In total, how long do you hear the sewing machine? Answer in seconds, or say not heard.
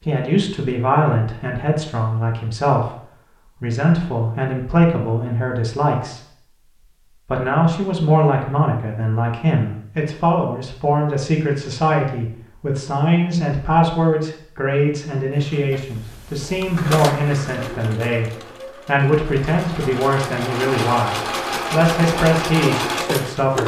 8 s.